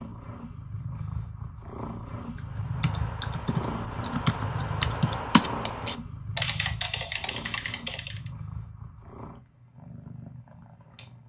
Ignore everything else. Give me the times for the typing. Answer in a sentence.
The typing can be heard from 2.4 to 8.3 s.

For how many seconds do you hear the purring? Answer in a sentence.
The purring can be heard for 11 seconds in total.